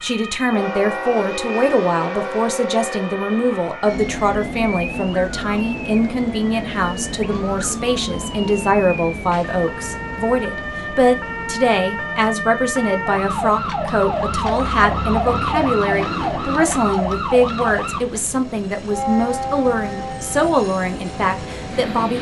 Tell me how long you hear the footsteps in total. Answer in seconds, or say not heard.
not heard.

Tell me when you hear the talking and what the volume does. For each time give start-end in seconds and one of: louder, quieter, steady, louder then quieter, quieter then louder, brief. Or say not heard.
0.0-22.1 steady.